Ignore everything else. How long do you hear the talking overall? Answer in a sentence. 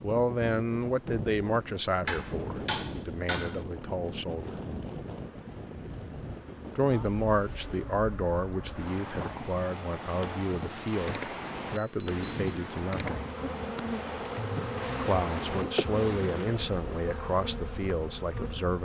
The talking can be heard for 15 seconds in total.